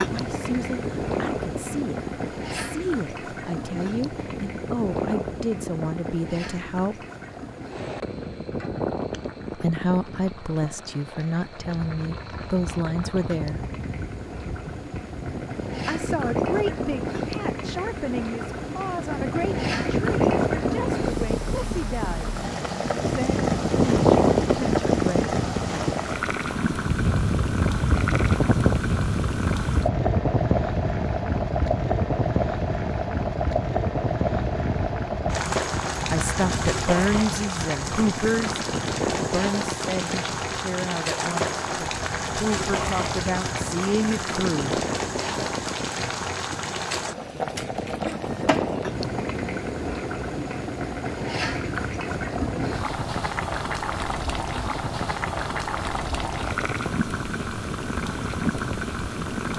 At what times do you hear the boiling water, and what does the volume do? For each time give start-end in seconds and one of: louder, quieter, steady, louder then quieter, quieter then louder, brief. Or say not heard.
0.0-59.5 louder.